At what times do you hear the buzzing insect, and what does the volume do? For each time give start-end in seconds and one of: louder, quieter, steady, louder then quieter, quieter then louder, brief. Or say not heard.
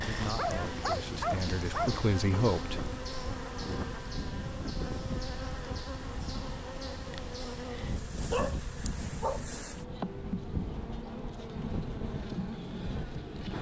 0.0-13.5 steady.